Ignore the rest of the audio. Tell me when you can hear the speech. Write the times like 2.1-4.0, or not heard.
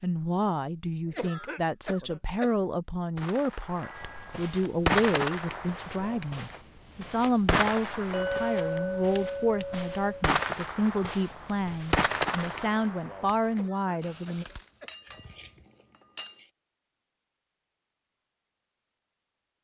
0.0-14.4.